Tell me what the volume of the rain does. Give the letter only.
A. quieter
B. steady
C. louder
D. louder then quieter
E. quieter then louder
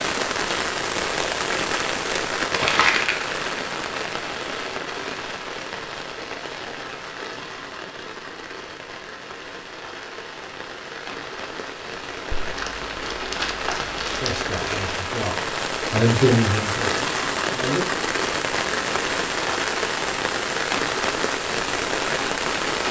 E.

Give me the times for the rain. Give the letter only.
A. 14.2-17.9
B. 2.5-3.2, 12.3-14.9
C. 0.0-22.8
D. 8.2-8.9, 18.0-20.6
C.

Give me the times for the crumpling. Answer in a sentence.
The crumpling can be heard from 2.5 to 3.2 s and from 12.3 to 14.9 s.